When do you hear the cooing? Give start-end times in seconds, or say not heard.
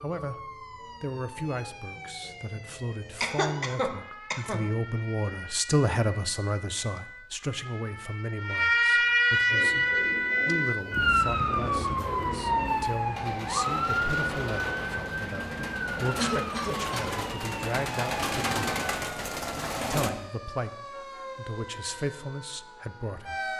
9.4-20.1.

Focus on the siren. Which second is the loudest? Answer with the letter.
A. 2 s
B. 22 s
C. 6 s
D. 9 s
D.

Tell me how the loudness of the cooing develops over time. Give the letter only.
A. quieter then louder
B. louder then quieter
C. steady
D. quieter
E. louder
E.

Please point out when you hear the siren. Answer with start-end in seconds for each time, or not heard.
0.0-23.5.